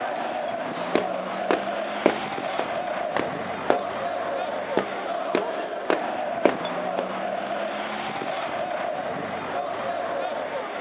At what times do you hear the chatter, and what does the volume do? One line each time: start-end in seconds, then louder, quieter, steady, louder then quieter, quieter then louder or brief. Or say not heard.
0.0-10.7 steady.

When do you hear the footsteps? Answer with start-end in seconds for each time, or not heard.
0.9-7.2.